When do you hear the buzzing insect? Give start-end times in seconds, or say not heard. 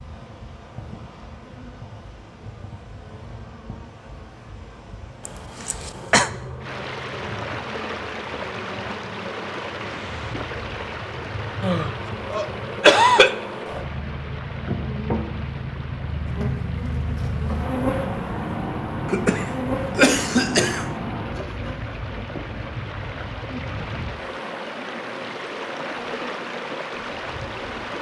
0.0-27.9.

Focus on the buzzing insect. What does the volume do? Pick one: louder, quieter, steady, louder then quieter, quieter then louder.
louder then quieter.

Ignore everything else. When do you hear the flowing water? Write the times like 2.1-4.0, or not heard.
6.6-27.9.